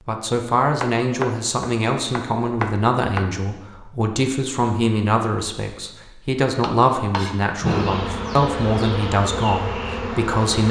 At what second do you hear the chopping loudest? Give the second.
8 s.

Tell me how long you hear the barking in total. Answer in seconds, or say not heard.
not heard.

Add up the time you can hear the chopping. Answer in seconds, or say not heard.
4 s.